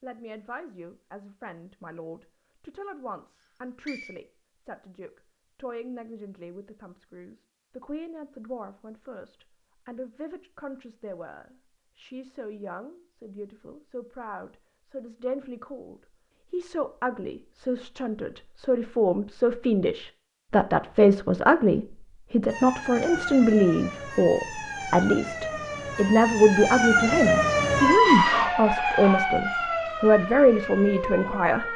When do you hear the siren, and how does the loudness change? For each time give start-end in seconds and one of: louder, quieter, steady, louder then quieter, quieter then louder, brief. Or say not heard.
22.4-31.7 louder then quieter.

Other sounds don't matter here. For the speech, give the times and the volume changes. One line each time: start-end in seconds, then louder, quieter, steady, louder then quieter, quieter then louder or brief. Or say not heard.
0.0-31.7 louder.